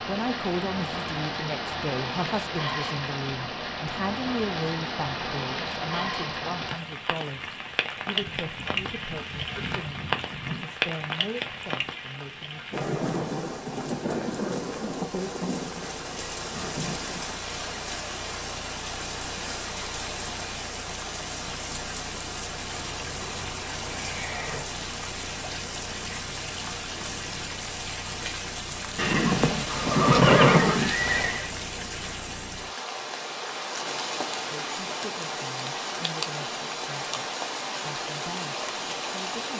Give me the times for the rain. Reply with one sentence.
The rain can be heard from 0.0 to 39.5 s.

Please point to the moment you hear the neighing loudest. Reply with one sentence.
The volume of the neighing peaks at 30 seconds.